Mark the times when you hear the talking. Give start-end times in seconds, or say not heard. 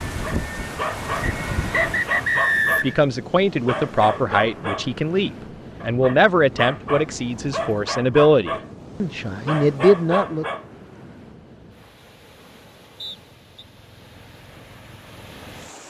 2.8-10.4.